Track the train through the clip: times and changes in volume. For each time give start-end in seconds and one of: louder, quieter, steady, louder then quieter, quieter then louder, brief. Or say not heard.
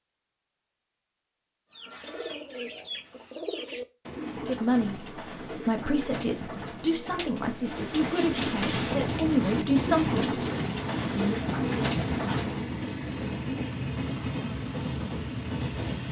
8.4-16.0 steady.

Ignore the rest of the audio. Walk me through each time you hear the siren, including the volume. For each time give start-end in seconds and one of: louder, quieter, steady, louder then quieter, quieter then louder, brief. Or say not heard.
not heard.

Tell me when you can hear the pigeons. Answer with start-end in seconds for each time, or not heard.
1.7-12.7.